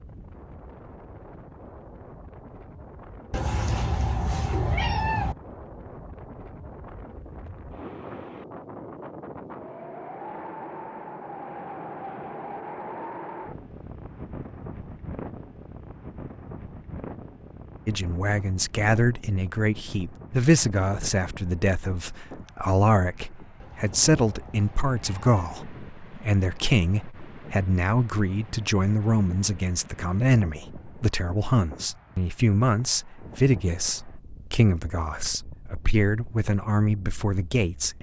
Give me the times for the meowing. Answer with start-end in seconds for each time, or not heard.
3.3-5.3, 23.6-25.6.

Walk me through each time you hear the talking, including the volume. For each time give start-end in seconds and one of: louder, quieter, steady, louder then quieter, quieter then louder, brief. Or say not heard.
17.9-37.9 steady.